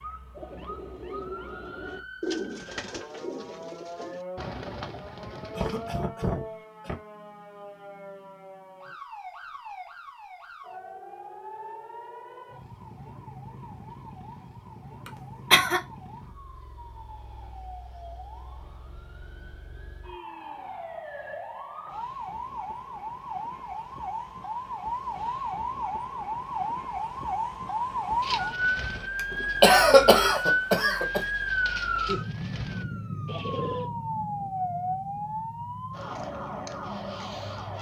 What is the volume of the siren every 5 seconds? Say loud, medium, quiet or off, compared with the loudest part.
quiet, quiet, quiet, quiet, medium, loud, loud, medium.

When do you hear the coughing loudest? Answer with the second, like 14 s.
30 s.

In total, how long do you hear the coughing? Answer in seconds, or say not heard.
4 s.